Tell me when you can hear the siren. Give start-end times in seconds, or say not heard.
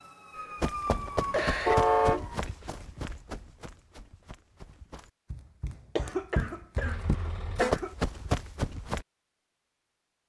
0.0-2.5.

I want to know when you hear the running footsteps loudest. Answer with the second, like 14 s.
8 s.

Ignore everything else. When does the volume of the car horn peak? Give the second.
2 s.